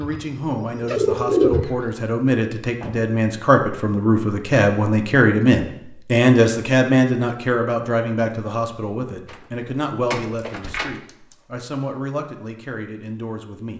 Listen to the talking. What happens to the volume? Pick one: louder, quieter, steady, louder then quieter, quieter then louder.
louder then quieter.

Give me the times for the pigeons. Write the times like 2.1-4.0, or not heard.
0.0-1.9.